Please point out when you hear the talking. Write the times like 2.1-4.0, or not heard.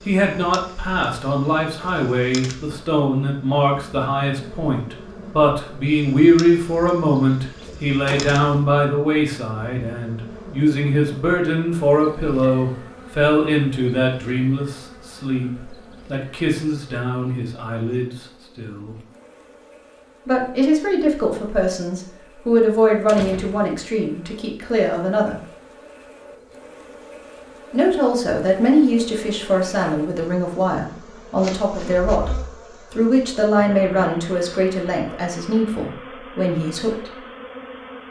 0.1-18.9, 20.2-25.4, 27.7-37.1.